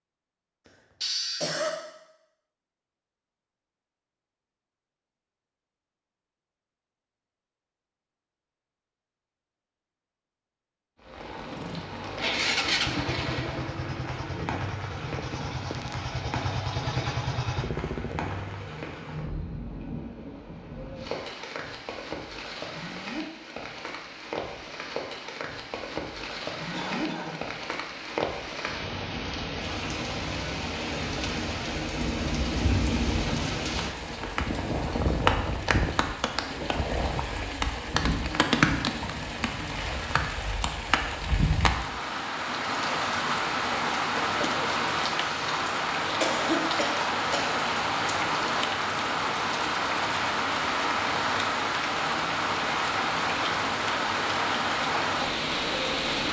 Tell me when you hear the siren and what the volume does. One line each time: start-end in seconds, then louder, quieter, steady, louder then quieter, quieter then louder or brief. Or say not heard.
not heard.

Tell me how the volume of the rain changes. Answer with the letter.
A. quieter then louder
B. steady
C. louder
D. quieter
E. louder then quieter
C.